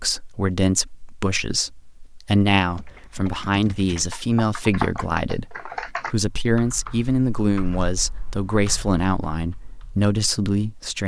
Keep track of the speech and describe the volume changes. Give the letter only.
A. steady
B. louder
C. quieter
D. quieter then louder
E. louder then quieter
A.